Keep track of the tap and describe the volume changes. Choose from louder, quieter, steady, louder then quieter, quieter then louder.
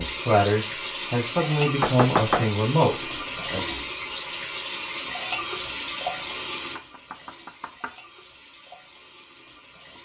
quieter.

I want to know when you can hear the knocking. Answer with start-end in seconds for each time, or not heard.
1.8-2.5, 6.8-8.0.